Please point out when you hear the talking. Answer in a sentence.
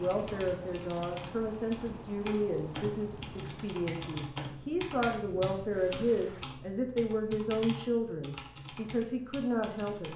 You can hear the talking from 0.0 to 10.1 s.